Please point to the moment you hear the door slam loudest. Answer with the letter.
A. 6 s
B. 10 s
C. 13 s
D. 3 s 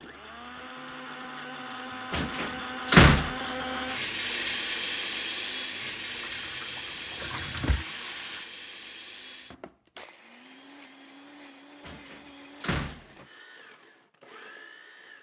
D.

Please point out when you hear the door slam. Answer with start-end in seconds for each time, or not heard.
2.1-3.4, 11.8-13.2.